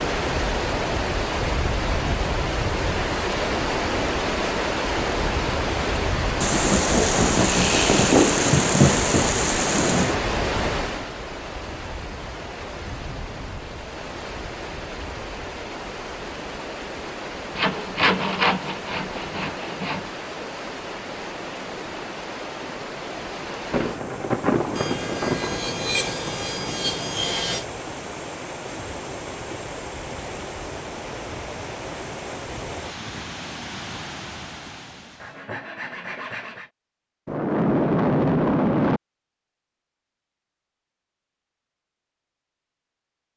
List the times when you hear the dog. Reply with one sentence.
You can't hear the dog here.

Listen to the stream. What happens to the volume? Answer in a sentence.
The loudness of the stream goes down.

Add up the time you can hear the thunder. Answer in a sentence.
The thunder can be heard for 9 seconds in total.